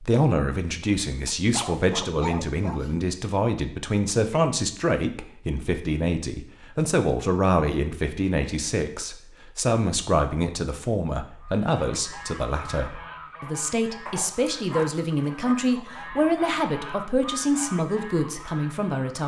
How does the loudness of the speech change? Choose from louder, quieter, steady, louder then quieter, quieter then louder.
steady.